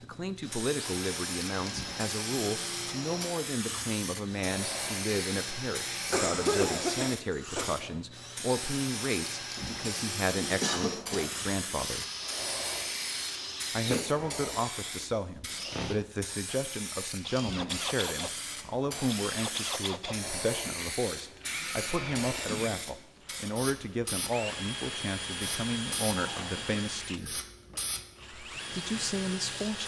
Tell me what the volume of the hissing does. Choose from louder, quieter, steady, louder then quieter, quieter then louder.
steady.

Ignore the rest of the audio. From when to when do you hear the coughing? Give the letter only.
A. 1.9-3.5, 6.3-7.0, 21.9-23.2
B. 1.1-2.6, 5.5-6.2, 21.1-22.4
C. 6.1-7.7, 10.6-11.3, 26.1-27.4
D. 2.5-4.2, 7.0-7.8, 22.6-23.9
C.